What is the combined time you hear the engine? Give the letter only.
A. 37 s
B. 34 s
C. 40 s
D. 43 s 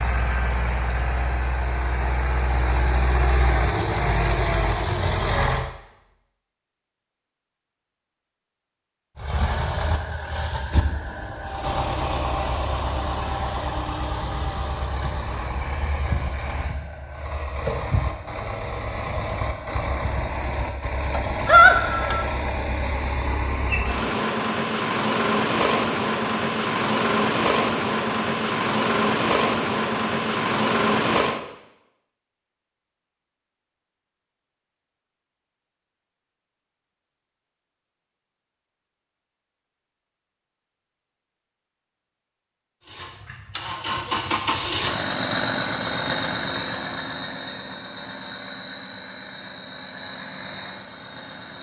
A.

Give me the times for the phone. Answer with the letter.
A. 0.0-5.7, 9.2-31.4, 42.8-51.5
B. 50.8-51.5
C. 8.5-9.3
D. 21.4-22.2
D.